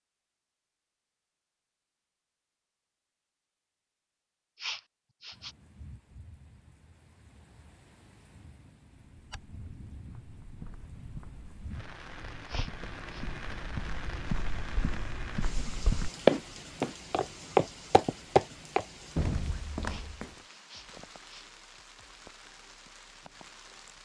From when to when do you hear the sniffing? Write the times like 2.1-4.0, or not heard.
4.5-5.5, 12.4-13.2, 19.9-21.4.